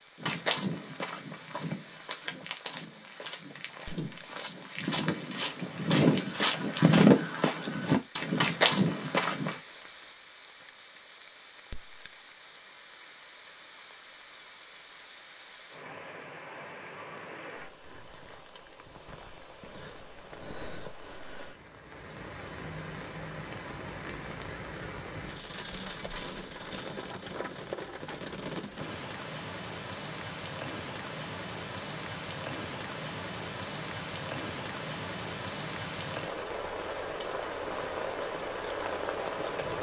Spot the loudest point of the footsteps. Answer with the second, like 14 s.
7 s.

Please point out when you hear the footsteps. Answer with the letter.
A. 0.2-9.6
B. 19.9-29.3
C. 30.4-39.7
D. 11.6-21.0
A.